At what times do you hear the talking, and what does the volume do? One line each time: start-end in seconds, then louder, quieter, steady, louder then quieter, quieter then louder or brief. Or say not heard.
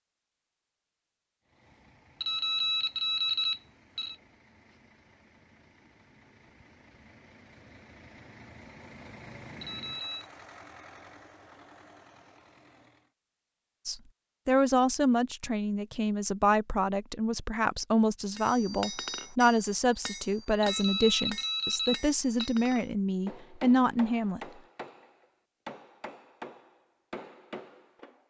13.8-24.4 steady.